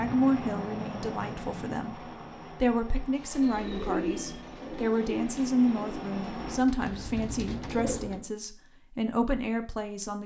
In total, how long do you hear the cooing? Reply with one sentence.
The cooing can be heard for 5 seconds in total.